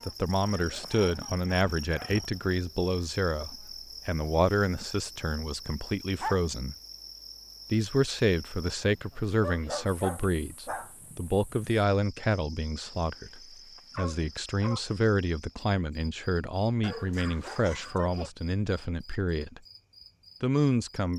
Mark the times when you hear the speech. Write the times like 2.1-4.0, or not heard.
0.1-6.8, 7.7-19.6, 20.4-21.1.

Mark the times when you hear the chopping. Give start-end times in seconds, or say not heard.
not heard.